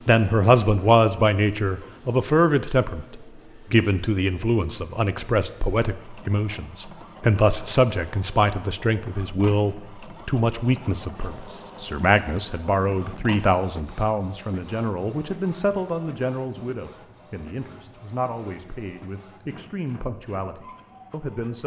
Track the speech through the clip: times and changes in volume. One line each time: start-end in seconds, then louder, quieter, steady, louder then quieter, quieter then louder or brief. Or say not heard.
0.1-21.6 quieter.